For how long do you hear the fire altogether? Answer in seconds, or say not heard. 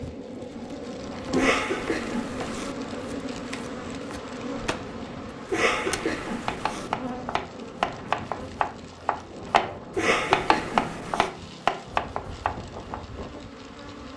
not heard.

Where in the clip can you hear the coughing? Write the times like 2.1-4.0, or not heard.
1.4-2.8, 5.5-6.9, 9.9-11.3.